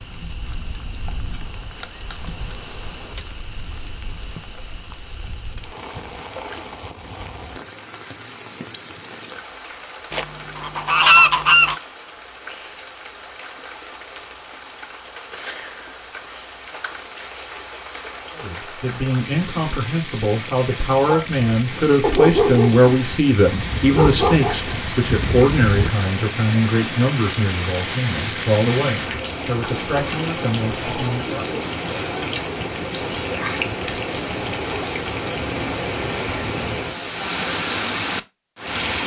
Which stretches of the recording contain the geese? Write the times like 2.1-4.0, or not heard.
10.1-11.8, 24.1-25.9.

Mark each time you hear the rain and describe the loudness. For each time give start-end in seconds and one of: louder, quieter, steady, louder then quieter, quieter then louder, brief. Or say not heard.
0.0-39.0 louder.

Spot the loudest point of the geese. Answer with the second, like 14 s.
11 s.